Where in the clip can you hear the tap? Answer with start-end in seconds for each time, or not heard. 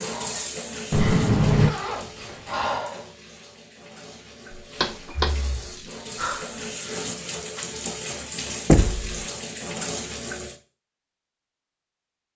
0.0-10.6.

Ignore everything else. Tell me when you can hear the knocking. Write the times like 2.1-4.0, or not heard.
0.9-1.8, 4.5-5.3, 8.7-9.1.